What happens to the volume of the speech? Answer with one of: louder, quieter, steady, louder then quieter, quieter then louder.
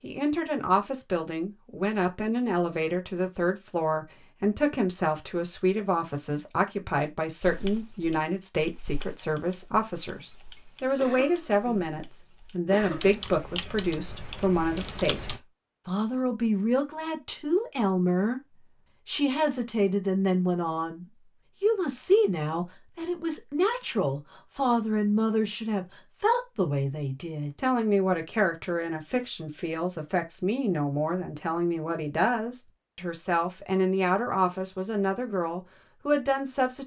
steady.